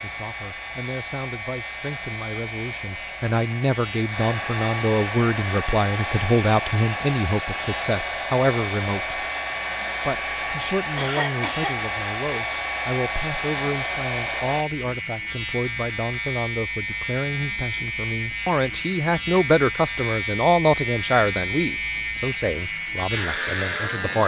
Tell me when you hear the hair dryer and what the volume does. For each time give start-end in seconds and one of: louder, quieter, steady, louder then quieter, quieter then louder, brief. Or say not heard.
0.0-14.7 louder.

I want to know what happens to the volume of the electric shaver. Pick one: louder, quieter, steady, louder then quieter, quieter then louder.
louder.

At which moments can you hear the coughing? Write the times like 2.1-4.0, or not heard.
10.9-11.8.